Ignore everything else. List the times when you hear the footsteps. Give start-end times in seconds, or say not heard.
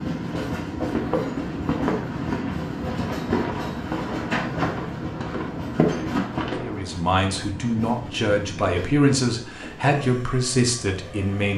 0.8-6.8.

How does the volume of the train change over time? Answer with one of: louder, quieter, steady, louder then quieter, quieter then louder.
quieter.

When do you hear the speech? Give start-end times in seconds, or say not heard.
6.6-11.5.